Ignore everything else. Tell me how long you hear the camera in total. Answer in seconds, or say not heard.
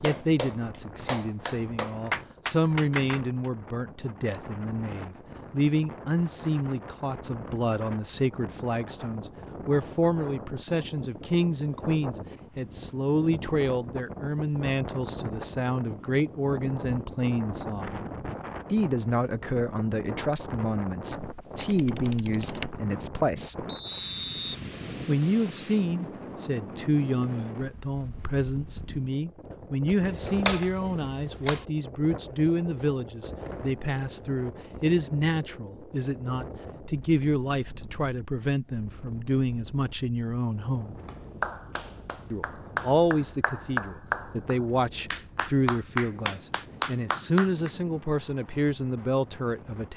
3 s.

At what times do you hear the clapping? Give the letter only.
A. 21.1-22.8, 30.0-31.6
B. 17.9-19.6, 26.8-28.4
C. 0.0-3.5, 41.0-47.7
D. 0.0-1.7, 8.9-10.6
C.